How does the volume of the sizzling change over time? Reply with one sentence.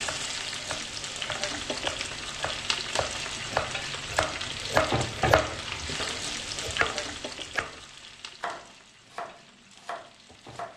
The volume of the sizzling goes down.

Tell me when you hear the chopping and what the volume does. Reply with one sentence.
You can hear the chopping from 0.0 to 10.7 s, getting louder then quieter.